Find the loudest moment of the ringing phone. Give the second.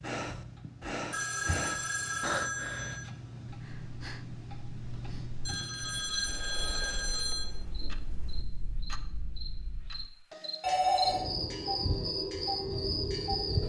11 s.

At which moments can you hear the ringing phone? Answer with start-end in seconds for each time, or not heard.
1.1-3.0, 5.5-7.5, 10.6-11.2.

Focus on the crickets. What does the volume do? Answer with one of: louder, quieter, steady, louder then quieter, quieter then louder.
louder.